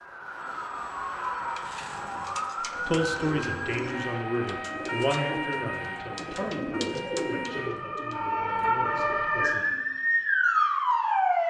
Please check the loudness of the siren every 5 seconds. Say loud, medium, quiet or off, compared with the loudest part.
medium, medium, loud.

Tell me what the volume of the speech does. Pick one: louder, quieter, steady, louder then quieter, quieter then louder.
quieter.